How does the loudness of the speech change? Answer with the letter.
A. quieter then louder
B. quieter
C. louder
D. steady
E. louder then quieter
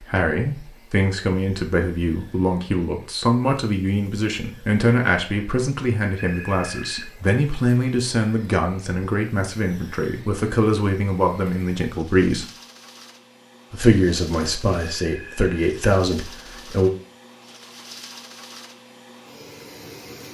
D.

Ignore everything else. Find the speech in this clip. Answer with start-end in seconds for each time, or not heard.
0.0-12.4, 13.7-16.9.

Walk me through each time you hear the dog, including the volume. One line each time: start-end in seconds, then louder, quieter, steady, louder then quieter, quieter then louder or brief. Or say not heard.
not heard.